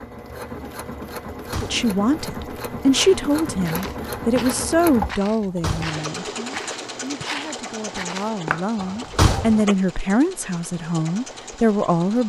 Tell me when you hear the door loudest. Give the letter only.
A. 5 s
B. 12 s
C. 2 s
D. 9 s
D.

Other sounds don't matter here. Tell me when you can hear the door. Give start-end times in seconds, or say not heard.
1.3-1.9, 5.2-6.0, 8.8-9.7.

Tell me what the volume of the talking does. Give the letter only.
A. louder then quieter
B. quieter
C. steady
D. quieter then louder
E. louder
D.